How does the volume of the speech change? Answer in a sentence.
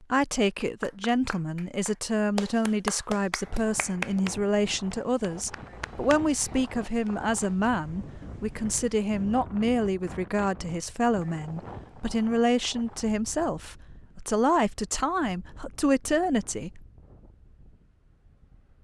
The volume of the speech stays about the same.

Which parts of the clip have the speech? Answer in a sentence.
The speech can be heard from 0.0 to 16.8 s.